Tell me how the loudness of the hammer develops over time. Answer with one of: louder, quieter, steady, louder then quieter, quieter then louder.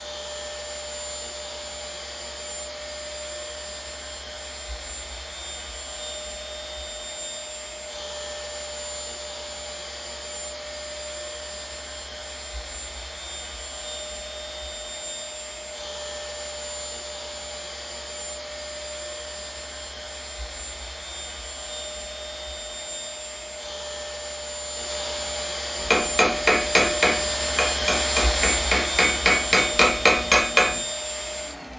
quieter then louder.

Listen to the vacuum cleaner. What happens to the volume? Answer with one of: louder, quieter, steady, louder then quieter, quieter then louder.
louder.